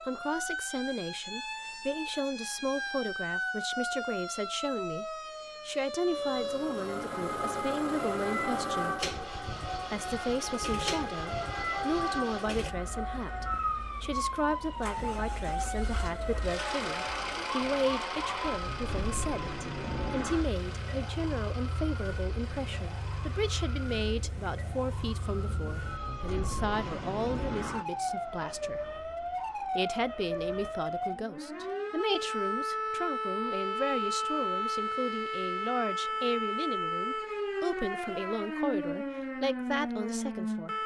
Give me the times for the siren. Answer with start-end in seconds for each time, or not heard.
0.0-40.8.